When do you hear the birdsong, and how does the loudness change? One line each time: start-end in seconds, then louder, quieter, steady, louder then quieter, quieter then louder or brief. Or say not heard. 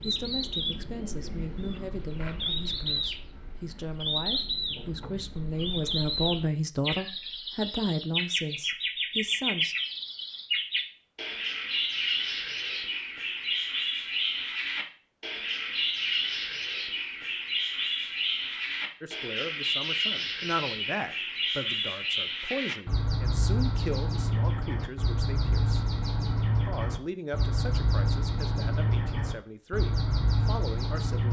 0.0-31.2 steady.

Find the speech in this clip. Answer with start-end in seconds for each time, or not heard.
0.0-9.8, 19.0-25.9, 26.6-31.2.